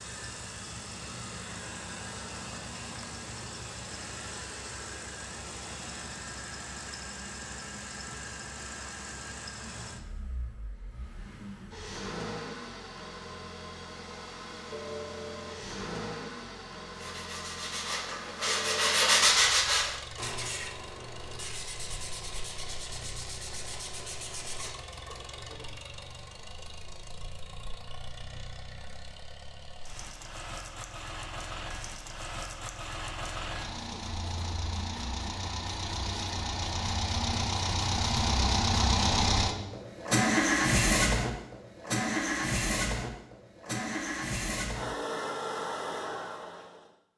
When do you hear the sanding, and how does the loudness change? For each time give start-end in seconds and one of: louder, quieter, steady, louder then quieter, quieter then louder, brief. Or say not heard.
16.9-25.7 louder then quieter.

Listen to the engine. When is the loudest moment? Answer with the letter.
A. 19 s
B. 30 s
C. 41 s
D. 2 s
C.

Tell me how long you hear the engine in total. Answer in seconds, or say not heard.
47 s.